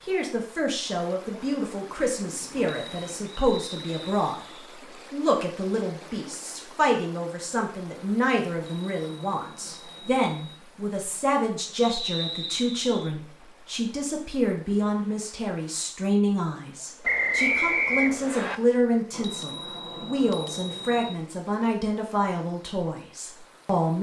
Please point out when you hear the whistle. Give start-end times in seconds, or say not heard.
3.2-4.5, 11.8-13.2, 17.0-18.6.